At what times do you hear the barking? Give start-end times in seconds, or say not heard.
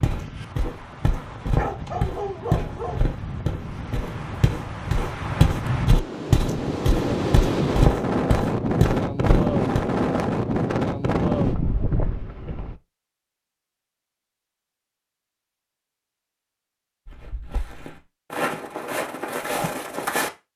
1.6-3.0.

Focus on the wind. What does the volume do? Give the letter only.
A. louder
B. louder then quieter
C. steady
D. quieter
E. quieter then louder
A.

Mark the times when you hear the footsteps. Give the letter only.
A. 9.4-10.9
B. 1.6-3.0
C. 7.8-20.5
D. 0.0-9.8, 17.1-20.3
D.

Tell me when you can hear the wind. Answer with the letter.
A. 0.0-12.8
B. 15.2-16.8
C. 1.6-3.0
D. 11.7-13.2
A.